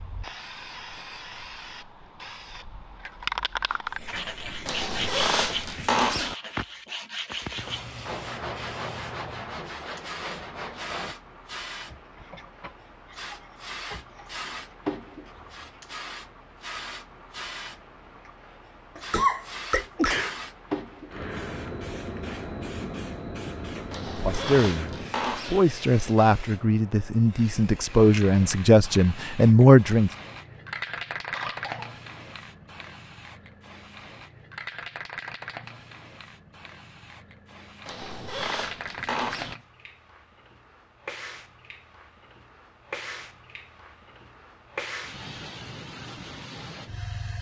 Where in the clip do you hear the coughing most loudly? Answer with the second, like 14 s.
19 s.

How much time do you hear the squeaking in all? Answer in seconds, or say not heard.
5 s.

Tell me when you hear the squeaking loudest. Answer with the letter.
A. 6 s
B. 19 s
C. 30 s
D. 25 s
A.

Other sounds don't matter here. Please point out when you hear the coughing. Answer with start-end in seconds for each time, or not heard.
18.9-20.4, 31.3-31.9.